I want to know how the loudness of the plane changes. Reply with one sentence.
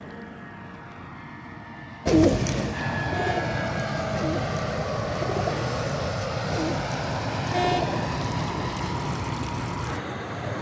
The loudness of the plane goes up.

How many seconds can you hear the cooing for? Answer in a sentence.
The cooing can be heard for 7 seconds in total.